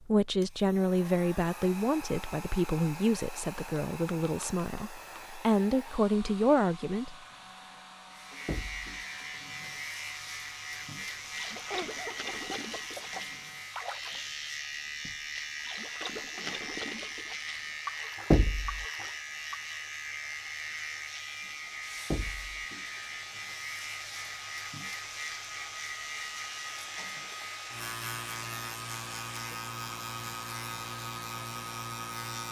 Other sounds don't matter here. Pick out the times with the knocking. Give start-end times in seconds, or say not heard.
8.4-8.8, 18.3-18.9, 22.1-22.6.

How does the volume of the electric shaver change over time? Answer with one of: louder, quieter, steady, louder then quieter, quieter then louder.
steady.